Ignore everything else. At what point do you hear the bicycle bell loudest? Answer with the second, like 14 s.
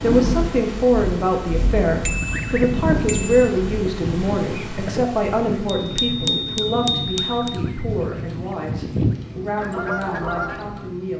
6 s.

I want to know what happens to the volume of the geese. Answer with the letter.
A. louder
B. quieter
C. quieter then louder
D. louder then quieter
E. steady
C.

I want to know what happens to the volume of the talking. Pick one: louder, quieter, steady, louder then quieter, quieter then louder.
quieter.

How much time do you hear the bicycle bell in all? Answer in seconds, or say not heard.
3 s.